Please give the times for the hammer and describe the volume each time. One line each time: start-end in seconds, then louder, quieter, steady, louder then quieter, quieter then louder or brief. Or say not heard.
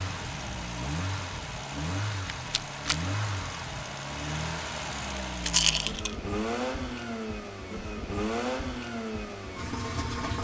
not heard.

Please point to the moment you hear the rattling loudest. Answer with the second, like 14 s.
6 s.